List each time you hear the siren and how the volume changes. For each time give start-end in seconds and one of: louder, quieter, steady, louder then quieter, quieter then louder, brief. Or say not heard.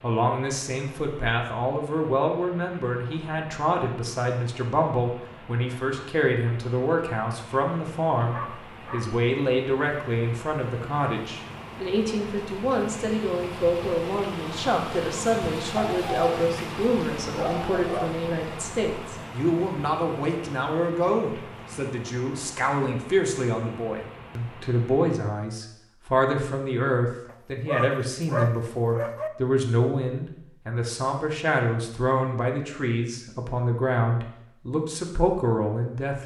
not heard.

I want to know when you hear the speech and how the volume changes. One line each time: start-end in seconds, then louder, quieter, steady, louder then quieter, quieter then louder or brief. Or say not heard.
0.0-36.2 steady.